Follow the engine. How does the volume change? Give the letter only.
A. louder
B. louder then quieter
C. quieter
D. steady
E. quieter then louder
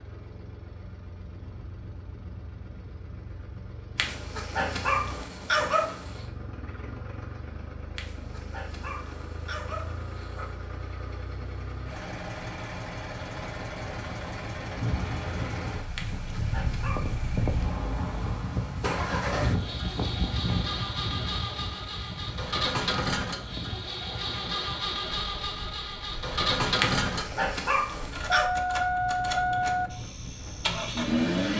A.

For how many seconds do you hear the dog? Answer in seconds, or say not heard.
8 s.